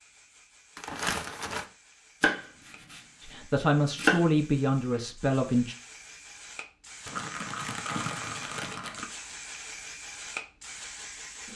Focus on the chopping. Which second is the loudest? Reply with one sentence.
The volume of the chopping peaks at 4 seconds.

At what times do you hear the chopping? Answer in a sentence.
The chopping can be heard from 2.2 to 4.2 s.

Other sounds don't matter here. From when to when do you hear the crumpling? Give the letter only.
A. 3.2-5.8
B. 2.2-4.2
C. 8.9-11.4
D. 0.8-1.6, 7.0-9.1
D.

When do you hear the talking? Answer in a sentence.
You can hear the talking from 3.2 to 5.8 s.